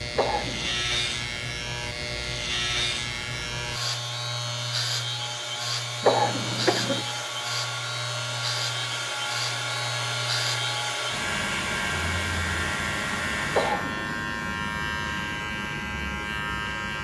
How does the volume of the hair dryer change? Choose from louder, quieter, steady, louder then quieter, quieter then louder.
louder.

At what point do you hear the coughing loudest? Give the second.
6 s.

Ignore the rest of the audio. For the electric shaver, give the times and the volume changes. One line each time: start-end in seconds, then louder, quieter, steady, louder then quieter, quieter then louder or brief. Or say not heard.
0.0-16.9 steady.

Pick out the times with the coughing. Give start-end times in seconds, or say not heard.
0.1-0.8, 6.0-7.0, 13.5-14.2.